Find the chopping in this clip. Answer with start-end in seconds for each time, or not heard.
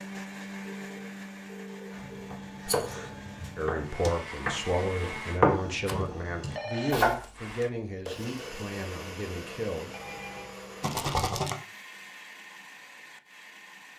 1.9-7.3.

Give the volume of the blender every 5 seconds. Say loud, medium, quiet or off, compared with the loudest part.
loud, loud, medium.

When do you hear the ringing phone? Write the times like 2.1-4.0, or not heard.
0.6-2.3, 6.4-7.0, 9.9-10.6.